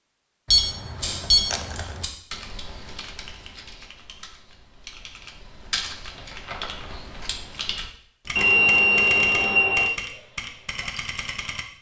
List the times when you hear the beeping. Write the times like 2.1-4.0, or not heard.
0.5-2.0, 8.3-9.9.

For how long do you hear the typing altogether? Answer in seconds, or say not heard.
9 s.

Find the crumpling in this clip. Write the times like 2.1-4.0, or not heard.
1.4-2.0, 6.2-7.3.